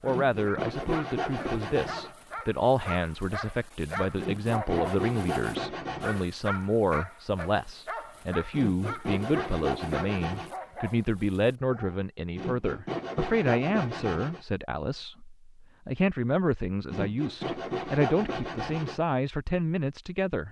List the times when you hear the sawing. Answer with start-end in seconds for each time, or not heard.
0.1-2.1, 4.2-6.2, 8.5-10.5, 12.3-14.4, 16.9-19.0.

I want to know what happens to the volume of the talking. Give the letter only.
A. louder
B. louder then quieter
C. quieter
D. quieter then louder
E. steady
E.